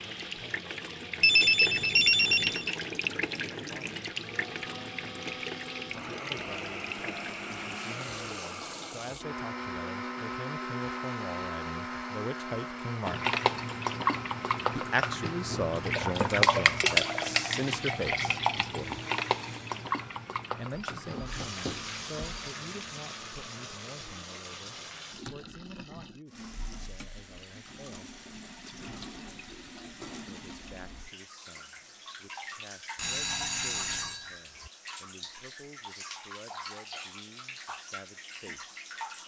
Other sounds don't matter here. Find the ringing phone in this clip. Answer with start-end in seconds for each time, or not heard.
1.2-2.8, 20.7-22.4, 33.0-34.7.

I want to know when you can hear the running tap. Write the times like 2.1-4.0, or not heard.
0.0-9.2, 13.1-39.2.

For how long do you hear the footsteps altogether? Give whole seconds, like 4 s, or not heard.
not heard.